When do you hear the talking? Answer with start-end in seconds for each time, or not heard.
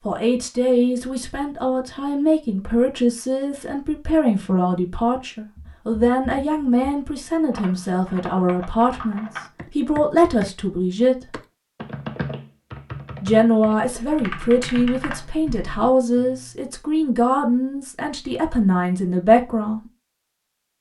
0.1-11.4, 13.2-19.8.